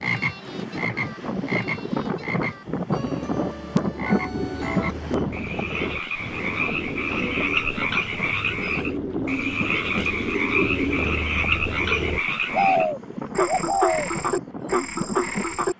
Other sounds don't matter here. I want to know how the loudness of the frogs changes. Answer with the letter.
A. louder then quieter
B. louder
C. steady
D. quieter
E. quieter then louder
B.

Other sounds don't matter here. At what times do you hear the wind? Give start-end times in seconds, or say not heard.
0.1-15.7.